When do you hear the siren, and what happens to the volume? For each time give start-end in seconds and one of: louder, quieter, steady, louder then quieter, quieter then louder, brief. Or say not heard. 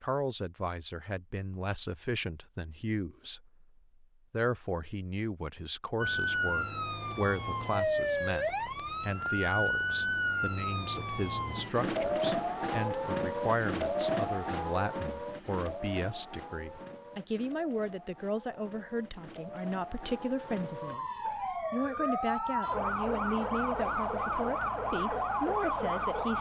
6.0-26.3 quieter then louder.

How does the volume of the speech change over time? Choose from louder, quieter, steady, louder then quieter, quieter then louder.
steady.